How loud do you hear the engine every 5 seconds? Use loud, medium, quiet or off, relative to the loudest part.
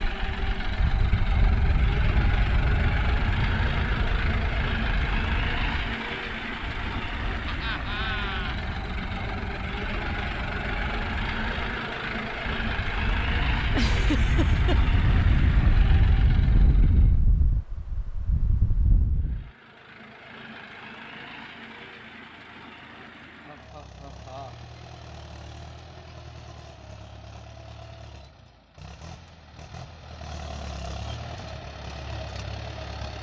loud, loud, loud, medium, quiet, quiet, medium.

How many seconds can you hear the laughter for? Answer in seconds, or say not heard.
3 s.